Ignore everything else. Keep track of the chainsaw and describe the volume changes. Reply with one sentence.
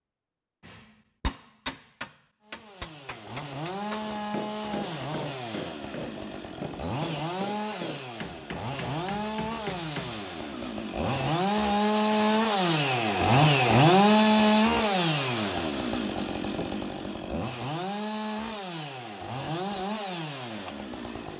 The volume of the chainsaw goes up, then down.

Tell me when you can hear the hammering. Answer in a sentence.
The hammering can be heard from 0.6 to 10.2 s.